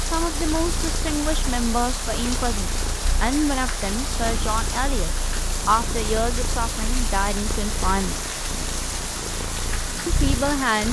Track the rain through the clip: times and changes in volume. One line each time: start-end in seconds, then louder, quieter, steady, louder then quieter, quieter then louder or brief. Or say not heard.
0.0-10.8 steady.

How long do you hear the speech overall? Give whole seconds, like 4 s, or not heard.
9 s.